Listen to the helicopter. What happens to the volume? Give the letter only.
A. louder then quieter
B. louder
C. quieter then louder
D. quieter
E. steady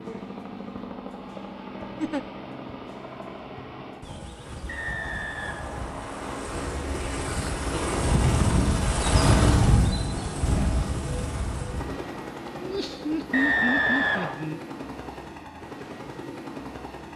A.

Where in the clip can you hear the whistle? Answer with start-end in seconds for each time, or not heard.
4.7-6.2, 13.3-14.3.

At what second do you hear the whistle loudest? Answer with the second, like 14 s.
14 s.